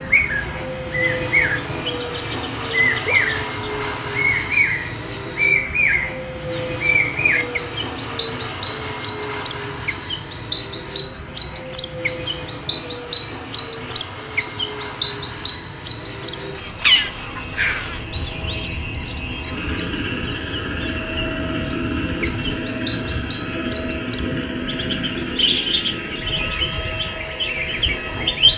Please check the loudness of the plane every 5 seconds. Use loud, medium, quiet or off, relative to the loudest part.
loud, loud, medium, medium, loud, loud.